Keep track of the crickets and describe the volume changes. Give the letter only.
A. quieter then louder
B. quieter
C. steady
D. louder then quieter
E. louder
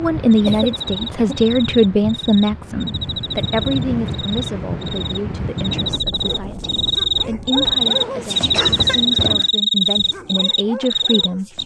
E.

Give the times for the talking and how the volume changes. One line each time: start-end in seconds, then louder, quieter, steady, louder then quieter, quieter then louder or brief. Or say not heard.
0.0-11.4 quieter then louder.